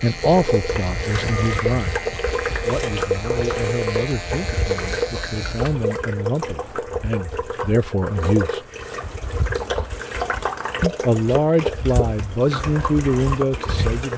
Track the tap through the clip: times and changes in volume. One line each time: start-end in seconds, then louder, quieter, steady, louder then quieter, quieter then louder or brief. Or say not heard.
0.0-14.1 steady.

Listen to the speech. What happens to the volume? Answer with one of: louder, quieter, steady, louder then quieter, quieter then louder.
quieter then louder.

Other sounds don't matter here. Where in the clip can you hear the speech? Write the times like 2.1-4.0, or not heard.
0.0-8.6, 10.8-14.1.